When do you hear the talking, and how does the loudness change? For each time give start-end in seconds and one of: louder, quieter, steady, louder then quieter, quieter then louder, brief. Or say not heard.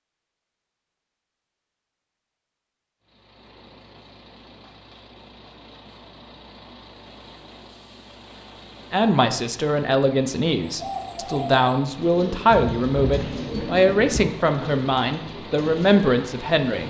8.9-16.8 steady.